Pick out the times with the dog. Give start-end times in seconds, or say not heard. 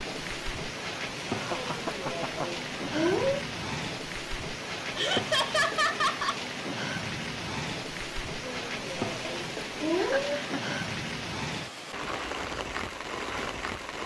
1.6-3.5, 8.4-10.4.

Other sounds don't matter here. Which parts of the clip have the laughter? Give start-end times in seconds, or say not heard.
1.4-2.5, 5.0-6.4, 9.9-10.6.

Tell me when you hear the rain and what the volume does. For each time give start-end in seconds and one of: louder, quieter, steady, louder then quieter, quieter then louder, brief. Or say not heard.
0.0-14.0 steady.